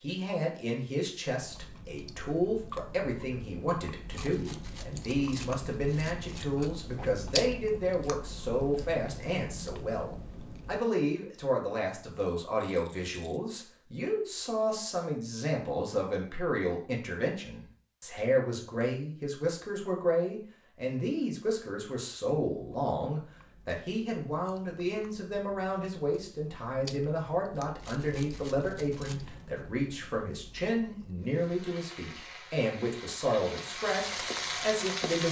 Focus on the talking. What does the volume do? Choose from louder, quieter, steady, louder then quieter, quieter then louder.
steady.